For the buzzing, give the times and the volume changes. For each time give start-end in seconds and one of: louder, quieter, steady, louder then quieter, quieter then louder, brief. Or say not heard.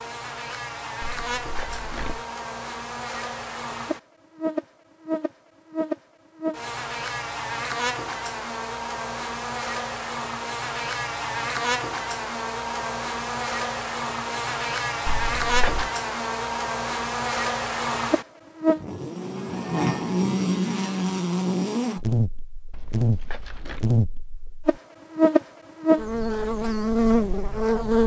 0.0-28.0 louder.